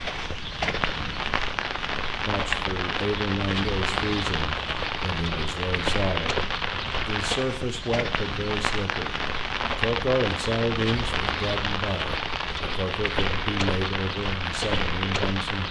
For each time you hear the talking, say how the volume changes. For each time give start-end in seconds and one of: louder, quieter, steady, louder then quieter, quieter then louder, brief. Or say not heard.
2.2-15.6 steady.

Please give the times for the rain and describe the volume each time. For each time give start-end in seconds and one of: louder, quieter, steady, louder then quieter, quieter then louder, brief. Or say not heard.
0.0-15.6 steady.